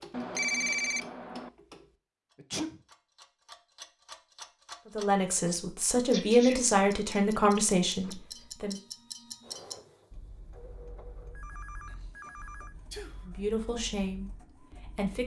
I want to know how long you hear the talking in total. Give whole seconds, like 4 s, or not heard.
6 s.